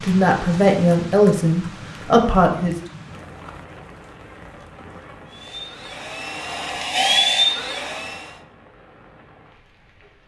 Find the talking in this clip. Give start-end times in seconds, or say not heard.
0.0-2.8.